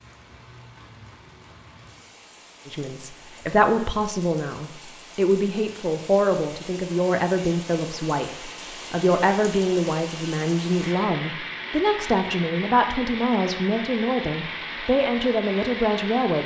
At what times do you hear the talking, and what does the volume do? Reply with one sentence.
You can hear the talking from 2.6 to 16.4 s, at a steady volume.